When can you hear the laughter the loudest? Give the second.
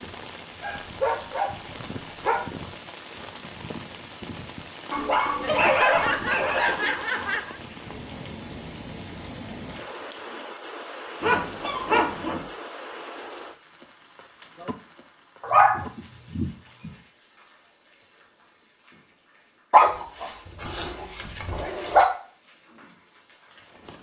6 s.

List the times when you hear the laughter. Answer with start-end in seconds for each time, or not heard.
5.4-7.6.